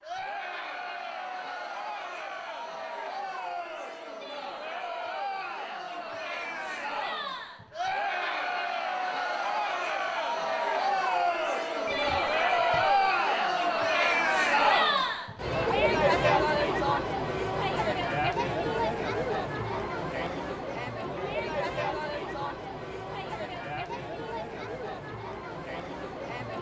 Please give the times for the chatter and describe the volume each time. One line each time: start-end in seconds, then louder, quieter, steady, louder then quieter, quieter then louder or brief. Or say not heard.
0.0-26.5 louder then quieter.